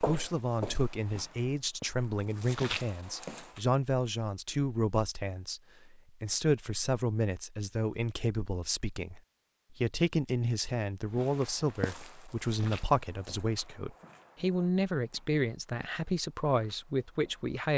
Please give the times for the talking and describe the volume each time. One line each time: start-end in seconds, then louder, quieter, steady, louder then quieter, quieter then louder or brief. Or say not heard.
0.0-17.7 steady.